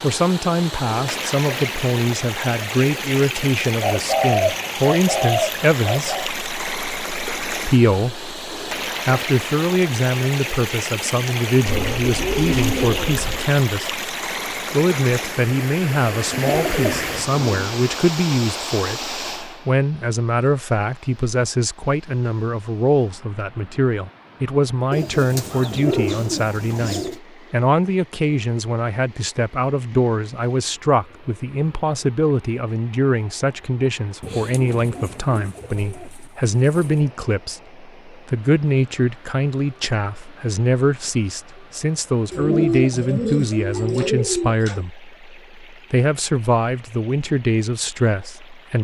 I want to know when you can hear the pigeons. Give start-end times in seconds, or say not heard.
3.8-6.3, 11.7-13.4, 16.3-17.7, 24.9-27.2, 34.2-37.0, 42.3-44.8.